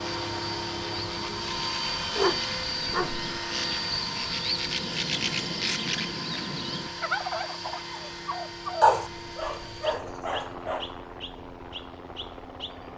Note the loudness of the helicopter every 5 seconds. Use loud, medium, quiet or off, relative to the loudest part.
loud, medium, medium.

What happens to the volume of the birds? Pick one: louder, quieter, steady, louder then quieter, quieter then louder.
louder then quieter.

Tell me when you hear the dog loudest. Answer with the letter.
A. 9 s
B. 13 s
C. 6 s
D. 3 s
A.